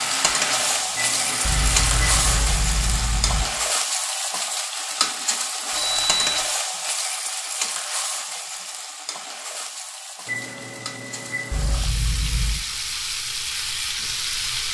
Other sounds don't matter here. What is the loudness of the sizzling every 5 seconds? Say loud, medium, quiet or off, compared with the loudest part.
loud, loud, medium.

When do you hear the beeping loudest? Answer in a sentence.
The volume of the beeping peaks at 6 seconds.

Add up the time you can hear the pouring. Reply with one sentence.
You can hear the pouring for 3 seconds altogether.